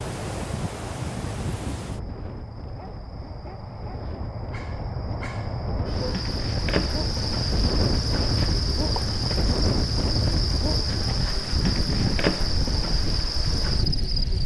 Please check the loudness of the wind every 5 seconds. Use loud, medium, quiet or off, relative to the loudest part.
medium, loud, loud.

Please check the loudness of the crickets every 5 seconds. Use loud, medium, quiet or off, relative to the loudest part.
medium, loud, loud.